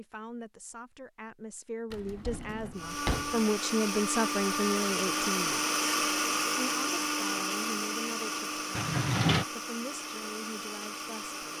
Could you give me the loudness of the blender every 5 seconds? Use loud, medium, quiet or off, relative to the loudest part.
loud, loud, medium.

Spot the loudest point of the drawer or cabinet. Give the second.
9 s.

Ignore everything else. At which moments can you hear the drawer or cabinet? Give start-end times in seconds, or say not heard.
1.9-3.4, 8.8-9.4.